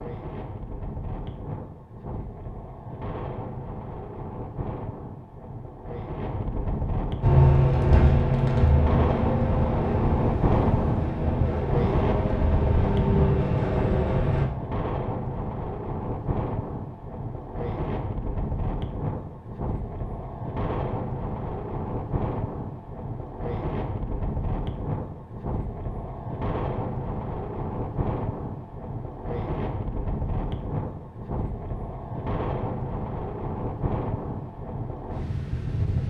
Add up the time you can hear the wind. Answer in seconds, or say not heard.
36 s.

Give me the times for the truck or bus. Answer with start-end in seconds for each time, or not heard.
7.2-14.4.